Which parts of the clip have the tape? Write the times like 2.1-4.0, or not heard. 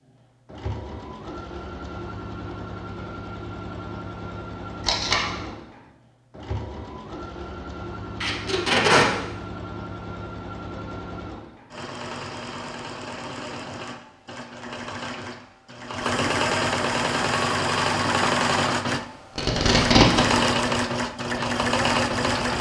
4.8-5.2, 8.2-9.1, 19.4-20.2.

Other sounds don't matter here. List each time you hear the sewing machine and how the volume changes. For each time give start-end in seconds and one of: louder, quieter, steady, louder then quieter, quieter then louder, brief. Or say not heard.
0.1-22.5 louder.